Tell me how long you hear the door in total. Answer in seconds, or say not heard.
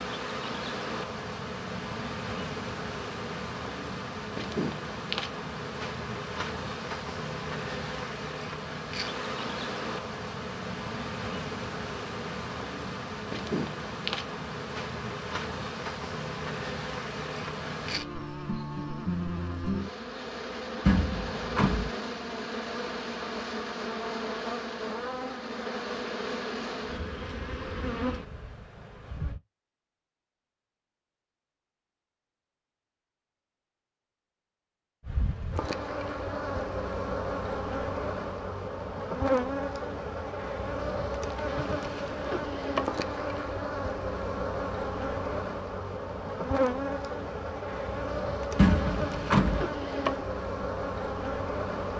2 s.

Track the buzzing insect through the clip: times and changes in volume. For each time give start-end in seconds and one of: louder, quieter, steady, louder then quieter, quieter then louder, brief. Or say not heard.
0.0-29.4 steady
35.0-51.9 steady.